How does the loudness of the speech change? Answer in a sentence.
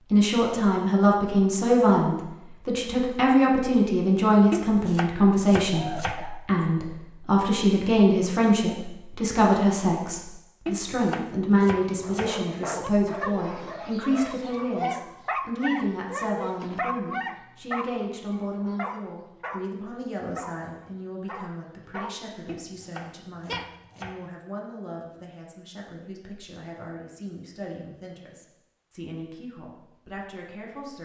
The volume of the speech goes down.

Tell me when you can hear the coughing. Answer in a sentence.
The coughing can be heard from 5.7 to 6.4 s.